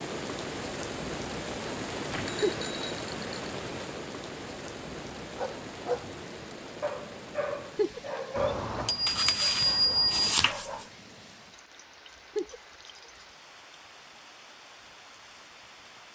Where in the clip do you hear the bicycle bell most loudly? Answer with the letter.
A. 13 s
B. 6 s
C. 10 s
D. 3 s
C.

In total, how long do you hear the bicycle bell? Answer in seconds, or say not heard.
3 s.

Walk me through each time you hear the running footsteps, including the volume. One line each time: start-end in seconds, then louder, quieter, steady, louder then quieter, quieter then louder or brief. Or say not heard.
not heard.